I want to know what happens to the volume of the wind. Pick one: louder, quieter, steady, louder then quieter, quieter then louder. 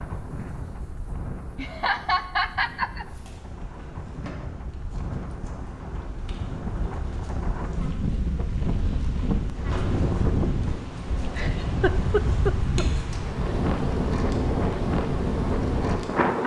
louder.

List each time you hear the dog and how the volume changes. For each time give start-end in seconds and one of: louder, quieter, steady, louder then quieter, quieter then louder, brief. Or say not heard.
not heard.